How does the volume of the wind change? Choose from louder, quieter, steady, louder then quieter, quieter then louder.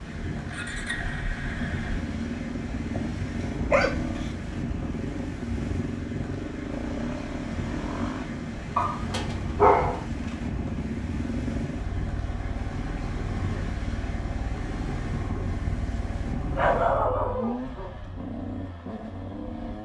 steady.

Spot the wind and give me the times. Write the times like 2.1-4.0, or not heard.
0.0-17.1.